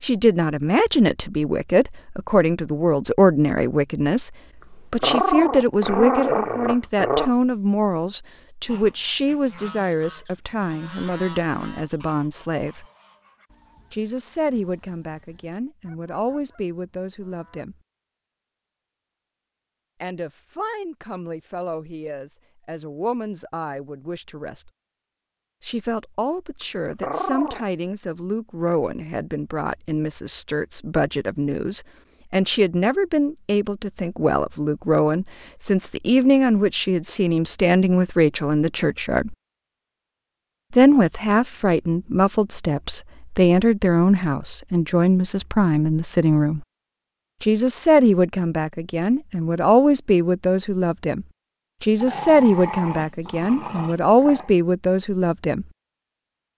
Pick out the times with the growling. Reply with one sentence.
The growling can be heard from 5.0 to 7.3 s, from 27.0 to 27.6 s and from 52.0 to 54.5 s.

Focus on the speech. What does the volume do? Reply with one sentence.
The volume of the speech goes down, then up.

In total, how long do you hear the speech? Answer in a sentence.
You can hear the speech for 49 seconds altogether.